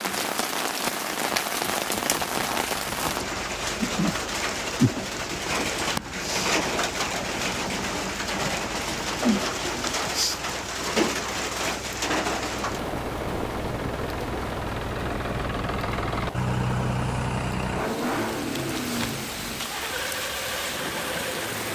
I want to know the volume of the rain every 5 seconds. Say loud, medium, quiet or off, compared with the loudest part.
loud, loud, loud, medium, medium.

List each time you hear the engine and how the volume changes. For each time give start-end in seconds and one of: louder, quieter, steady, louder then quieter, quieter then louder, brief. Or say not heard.
0.1-21.7 louder.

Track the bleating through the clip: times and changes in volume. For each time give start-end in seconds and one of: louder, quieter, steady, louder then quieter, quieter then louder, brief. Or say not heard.
not heard.